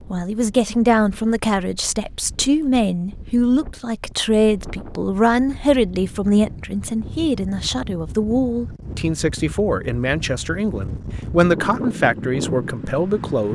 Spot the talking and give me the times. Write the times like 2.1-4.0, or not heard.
0.1-13.4.